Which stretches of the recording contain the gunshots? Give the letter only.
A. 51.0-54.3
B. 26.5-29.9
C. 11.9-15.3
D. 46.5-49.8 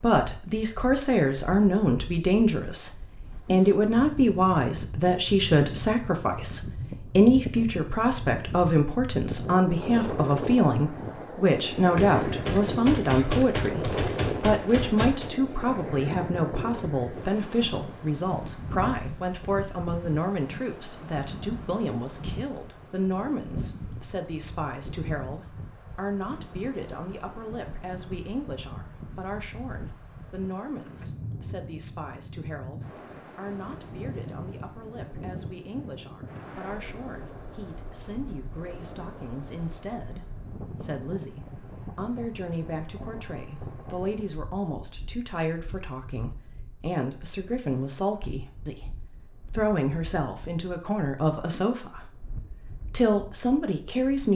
C.